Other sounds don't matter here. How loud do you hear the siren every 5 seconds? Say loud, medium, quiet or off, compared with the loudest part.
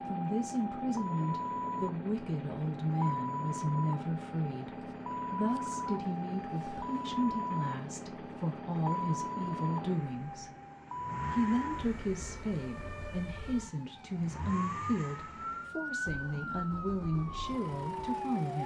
loud, loud, medium, loud.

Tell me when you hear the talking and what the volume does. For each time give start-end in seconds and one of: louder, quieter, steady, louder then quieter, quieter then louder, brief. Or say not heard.
0.1-10.5 steady
11.2-18.6 steady.